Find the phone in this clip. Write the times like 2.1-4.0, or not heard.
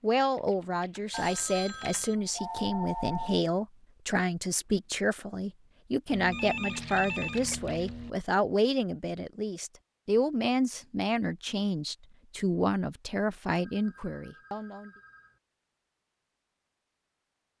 1.1-3.5, 6.1-8.1, 13.4-15.4.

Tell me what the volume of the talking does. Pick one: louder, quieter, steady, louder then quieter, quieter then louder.
steady.